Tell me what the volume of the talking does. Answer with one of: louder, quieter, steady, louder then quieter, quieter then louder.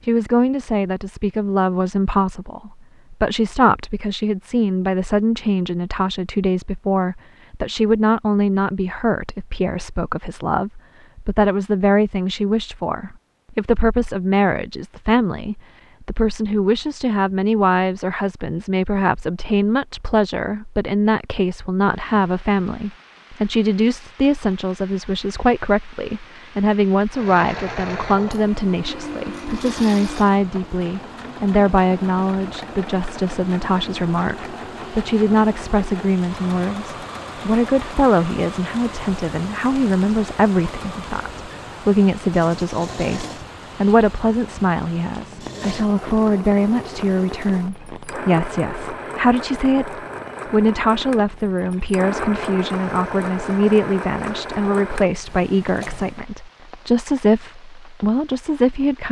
steady.